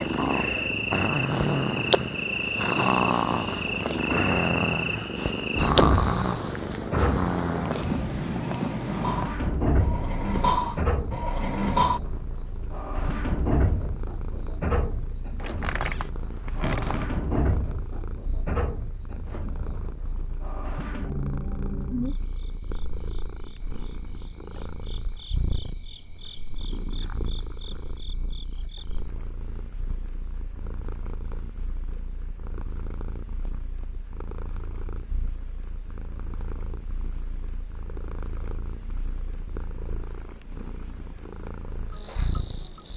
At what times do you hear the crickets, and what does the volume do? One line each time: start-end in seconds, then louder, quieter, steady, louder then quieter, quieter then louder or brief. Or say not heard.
0.0-42.9 quieter.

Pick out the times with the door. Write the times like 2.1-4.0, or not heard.
15.3-17.2.